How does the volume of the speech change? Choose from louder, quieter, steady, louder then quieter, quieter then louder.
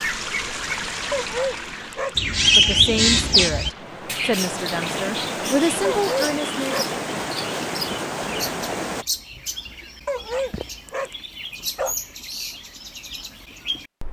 quieter then louder.